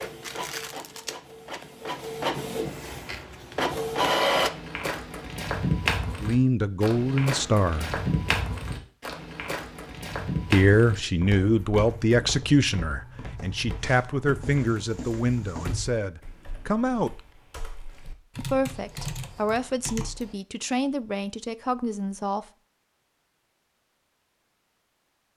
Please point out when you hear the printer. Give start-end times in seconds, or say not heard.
0.0-4.5.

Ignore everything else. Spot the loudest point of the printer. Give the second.
4 s.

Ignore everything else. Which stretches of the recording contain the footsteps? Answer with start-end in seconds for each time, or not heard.
4.3-15.8.